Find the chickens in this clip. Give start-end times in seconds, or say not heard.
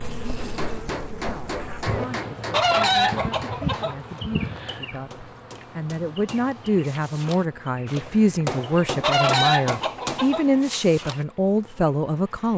2.5-4.0, 9.0-10.4.